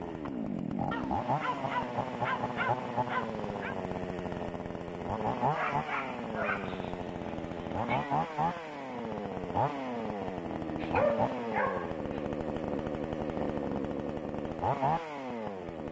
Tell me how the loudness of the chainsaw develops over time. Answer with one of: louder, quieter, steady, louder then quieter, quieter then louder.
steady.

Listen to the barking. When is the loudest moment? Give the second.
11 s.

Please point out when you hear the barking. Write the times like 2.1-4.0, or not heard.
0.9-3.8, 5.5-6.8, 10.8-12.2.